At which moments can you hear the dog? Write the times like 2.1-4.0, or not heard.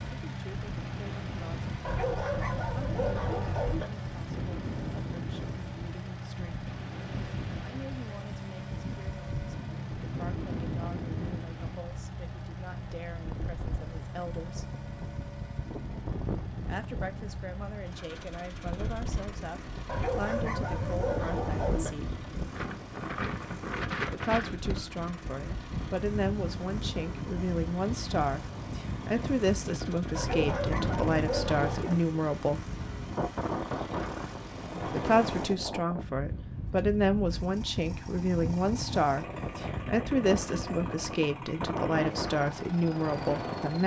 1.9-3.9, 19.9-21.9, 30.1-31.9.